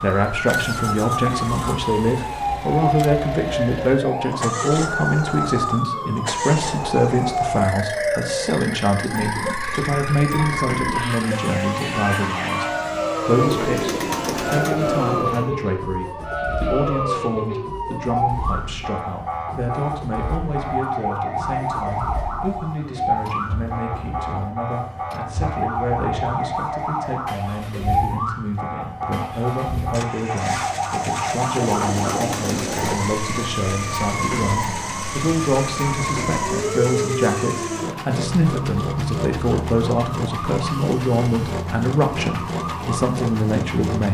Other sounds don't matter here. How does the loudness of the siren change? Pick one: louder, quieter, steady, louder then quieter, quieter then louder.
steady.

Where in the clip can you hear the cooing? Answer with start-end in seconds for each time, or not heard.
13.3-15.6, 31.6-33.1.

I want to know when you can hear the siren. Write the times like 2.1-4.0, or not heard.
0.0-43.9.